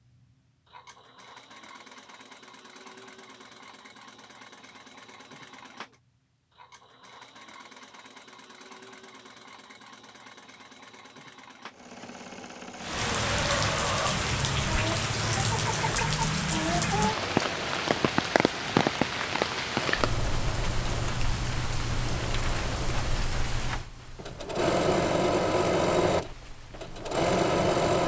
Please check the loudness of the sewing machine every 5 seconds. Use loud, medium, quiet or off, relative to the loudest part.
quiet, quiet, quiet, quiet, medium, loud.